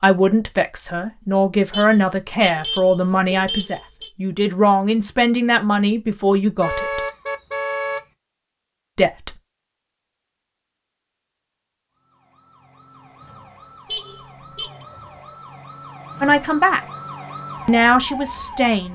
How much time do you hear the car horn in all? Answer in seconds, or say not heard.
5 s.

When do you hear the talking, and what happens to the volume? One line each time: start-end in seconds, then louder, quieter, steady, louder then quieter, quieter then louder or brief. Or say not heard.
0.0-7.0 steady
8.9-9.3 brief
16.2-16.8 brief
17.6-18.9 brief.